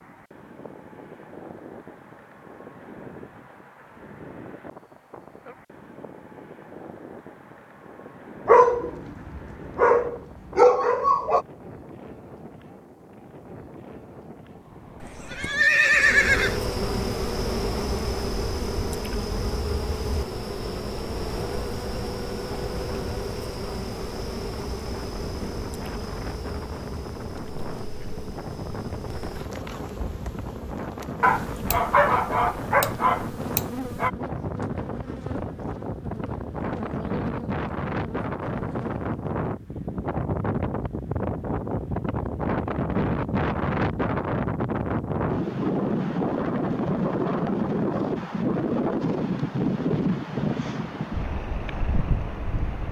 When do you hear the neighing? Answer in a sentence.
You can hear the neighing from 15.0 to 16.6 s.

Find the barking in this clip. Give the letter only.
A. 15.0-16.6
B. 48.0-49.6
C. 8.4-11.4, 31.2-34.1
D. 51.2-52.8
C.